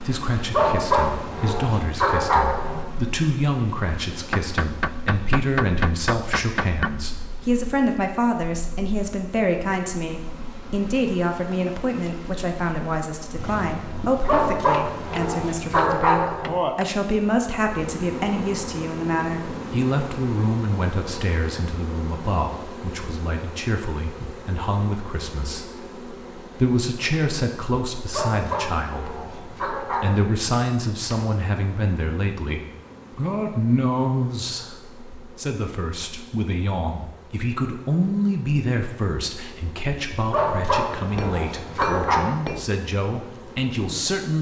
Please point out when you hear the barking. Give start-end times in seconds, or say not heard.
0.5-2.9, 14.2-16.6, 28.1-30.2, 40.3-42.3.